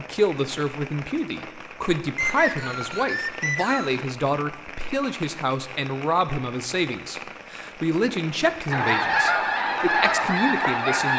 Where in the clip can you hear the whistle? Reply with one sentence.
The whistle can be heard from 2.1 to 4.0 s.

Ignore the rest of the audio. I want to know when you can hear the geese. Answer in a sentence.
You can hear the geese from 8.7 to 11.1 s.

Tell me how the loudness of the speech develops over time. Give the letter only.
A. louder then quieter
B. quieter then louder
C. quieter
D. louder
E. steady
E.